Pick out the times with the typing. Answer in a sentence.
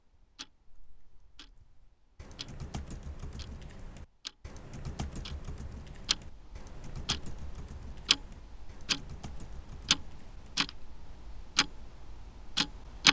The typing can be heard from 0.7 to 10.8 s.